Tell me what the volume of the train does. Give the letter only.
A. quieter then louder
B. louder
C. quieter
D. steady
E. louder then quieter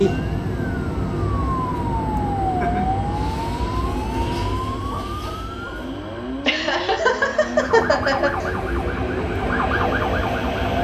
A.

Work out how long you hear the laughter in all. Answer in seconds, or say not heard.
3 s.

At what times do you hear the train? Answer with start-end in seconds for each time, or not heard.
0.0-10.7.